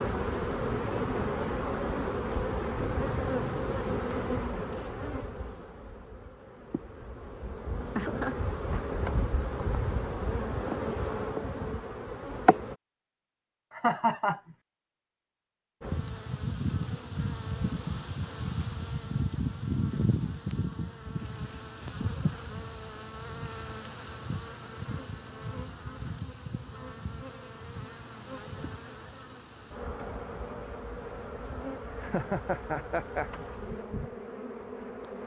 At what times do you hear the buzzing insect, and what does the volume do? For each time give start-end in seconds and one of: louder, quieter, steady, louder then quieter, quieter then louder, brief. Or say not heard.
0.0-12.8 quieter then louder
15.8-35.2 quieter.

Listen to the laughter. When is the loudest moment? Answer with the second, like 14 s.
14 s.